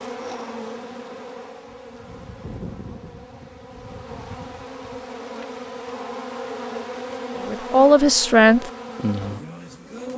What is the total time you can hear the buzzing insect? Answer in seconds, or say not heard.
10 s.